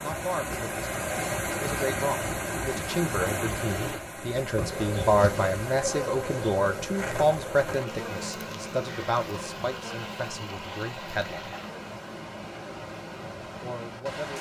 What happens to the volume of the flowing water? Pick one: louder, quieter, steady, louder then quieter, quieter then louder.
quieter.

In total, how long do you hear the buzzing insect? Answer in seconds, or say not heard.
10 s.